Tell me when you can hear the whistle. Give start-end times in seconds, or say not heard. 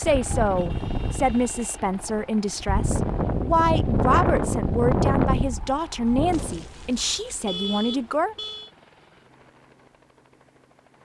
not heard.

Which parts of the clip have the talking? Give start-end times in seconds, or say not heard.
0.0-8.3.